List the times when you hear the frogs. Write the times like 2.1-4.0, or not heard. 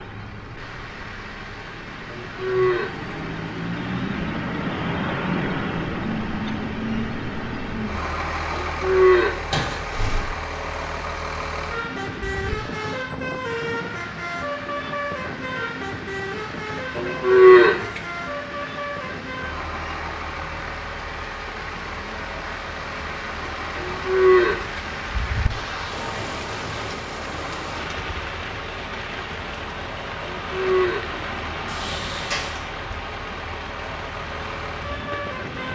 not heard.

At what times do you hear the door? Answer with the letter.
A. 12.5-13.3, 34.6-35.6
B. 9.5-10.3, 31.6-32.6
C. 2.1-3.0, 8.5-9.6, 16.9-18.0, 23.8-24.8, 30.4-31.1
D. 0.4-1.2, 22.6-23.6
B.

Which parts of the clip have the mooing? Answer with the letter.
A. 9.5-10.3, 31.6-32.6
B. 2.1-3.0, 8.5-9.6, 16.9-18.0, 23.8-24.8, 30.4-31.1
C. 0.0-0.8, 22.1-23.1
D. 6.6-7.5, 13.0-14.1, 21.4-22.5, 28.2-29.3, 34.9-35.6
B.